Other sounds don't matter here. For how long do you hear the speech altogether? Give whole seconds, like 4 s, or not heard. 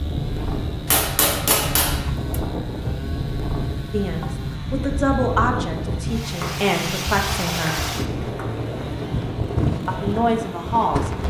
5 s.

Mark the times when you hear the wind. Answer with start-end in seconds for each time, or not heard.
0.0-11.2.